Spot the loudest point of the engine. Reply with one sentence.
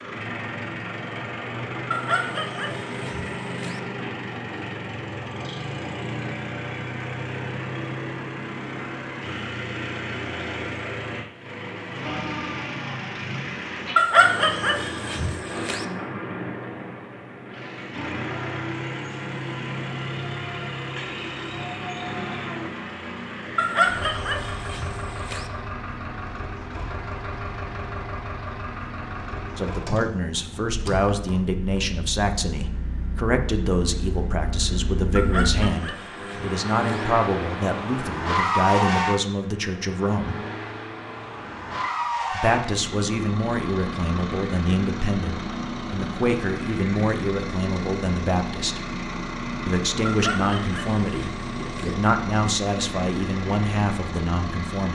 The loudest moment of the engine is at 39 seconds.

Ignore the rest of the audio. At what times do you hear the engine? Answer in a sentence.
You can hear the engine from 0.0 to 54.8 s.